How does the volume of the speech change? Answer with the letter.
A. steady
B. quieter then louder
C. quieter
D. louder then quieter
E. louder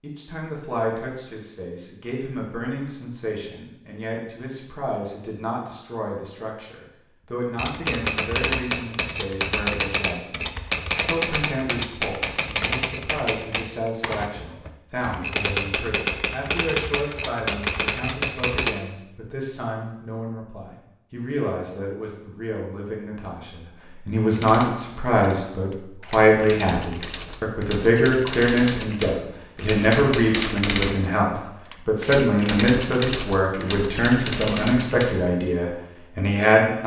E.